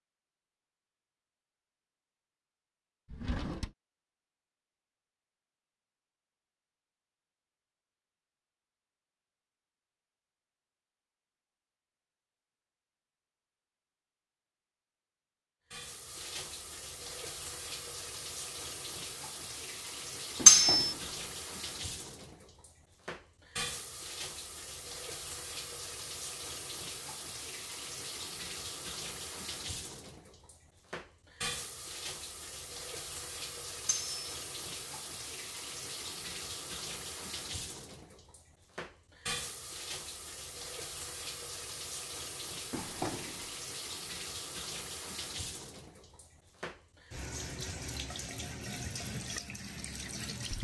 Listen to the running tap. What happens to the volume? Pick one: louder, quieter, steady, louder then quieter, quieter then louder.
steady.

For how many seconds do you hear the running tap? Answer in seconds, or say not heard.
35 s.